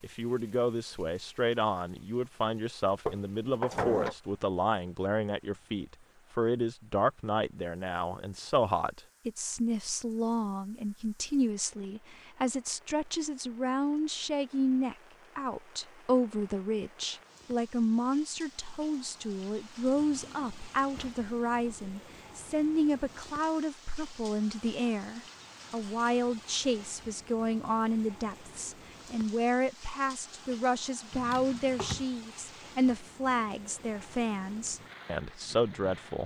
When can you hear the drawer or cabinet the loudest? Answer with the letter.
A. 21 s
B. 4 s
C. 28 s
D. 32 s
B.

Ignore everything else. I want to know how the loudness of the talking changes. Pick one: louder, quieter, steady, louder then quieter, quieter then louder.
steady.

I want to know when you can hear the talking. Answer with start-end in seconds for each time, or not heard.
0.0-36.2.